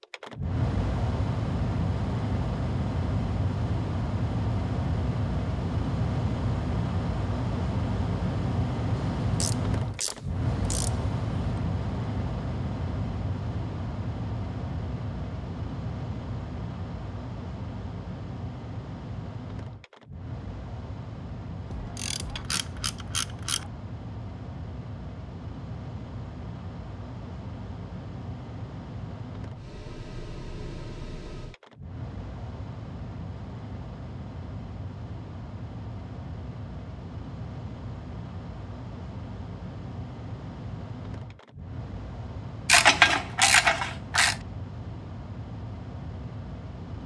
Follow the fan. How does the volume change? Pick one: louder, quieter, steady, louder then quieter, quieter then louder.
quieter.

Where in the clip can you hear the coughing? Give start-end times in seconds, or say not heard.
not heard.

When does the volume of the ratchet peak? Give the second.
43 s.